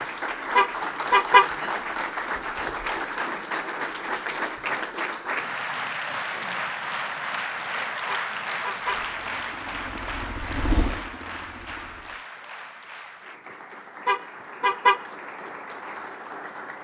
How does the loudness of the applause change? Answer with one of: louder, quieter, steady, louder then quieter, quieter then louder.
quieter.